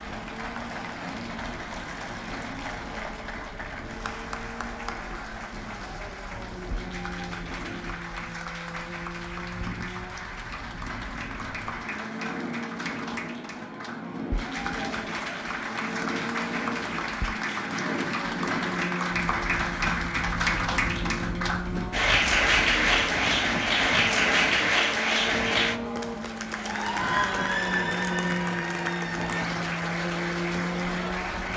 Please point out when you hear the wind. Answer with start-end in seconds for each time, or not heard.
0.0-31.5.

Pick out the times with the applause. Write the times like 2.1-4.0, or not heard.
0.0-31.5.